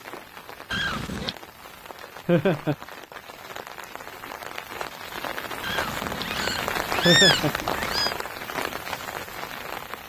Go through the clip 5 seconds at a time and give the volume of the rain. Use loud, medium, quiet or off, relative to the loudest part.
medium, loud.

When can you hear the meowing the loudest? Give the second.
7 s.